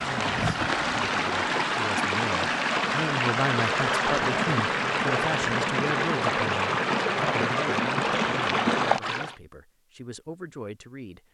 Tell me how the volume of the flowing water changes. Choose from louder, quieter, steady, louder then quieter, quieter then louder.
steady.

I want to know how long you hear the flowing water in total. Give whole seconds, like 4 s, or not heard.
9 s.